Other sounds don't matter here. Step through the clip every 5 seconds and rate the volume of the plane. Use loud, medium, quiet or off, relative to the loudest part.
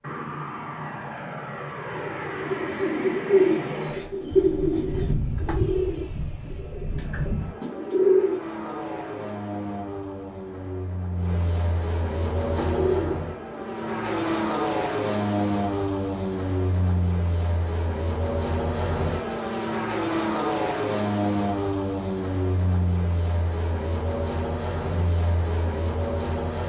medium, medium, loud, loud, loud, loud.